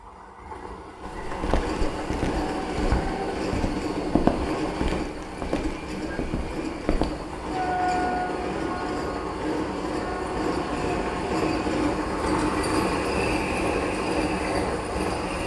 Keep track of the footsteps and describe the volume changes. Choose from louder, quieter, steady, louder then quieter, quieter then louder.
louder then quieter.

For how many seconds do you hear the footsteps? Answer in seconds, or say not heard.
6 s.